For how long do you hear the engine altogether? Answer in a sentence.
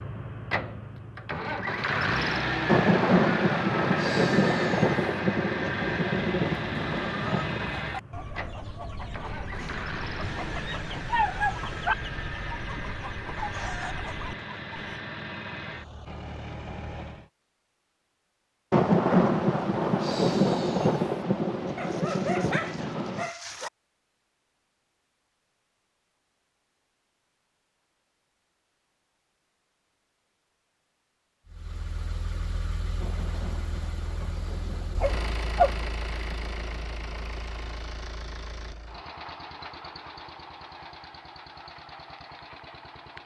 You can hear the engine for 29 seconds altogether.